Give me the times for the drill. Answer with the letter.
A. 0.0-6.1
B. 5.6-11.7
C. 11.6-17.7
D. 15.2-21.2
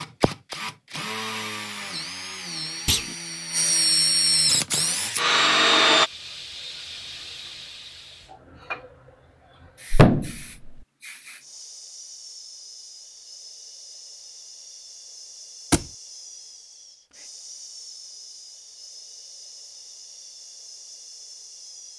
A.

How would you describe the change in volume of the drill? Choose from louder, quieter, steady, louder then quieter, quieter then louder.
louder.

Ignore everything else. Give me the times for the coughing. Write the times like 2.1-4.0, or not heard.
not heard.